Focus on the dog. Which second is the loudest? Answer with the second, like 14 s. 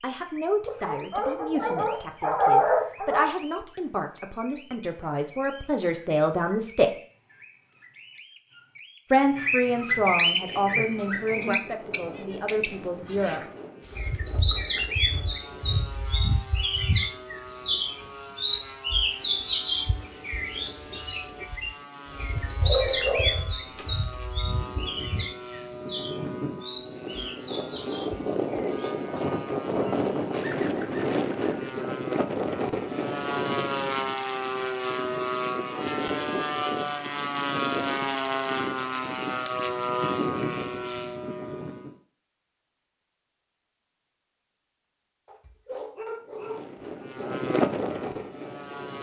3 s.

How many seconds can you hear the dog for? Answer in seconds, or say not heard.
6 s.